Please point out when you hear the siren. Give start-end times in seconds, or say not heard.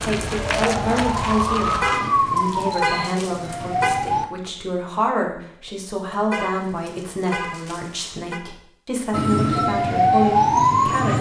0.0-4.2, 9.1-11.1.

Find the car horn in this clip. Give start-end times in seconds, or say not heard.
1.8-4.0, 6.3-8.4.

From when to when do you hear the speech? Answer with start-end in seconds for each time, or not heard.
0.0-11.1.